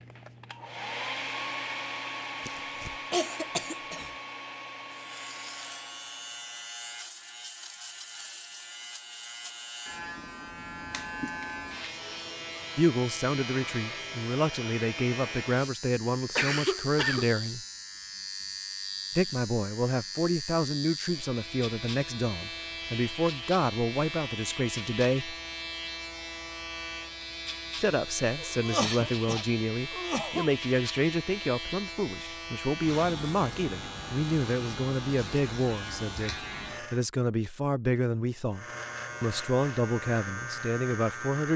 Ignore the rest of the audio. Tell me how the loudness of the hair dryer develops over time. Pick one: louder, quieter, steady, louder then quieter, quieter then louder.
quieter.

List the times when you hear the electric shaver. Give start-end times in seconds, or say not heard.
4.9-37.0, 38.5-41.5.